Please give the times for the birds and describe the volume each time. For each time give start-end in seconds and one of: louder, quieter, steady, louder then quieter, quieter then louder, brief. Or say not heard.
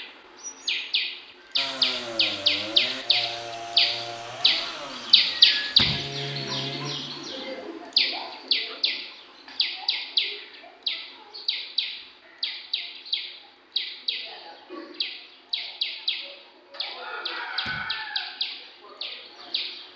0.0-19.9 quieter.